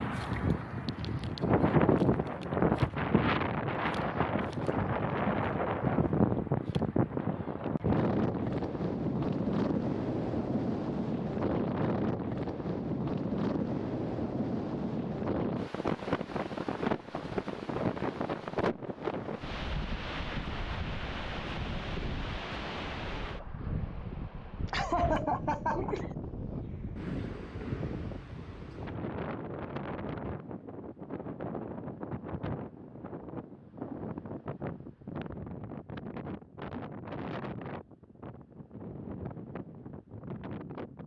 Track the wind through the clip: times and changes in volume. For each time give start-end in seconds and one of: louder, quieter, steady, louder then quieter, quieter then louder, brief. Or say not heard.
0.0-41.0 quieter.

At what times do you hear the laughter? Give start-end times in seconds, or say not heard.
24.6-26.1.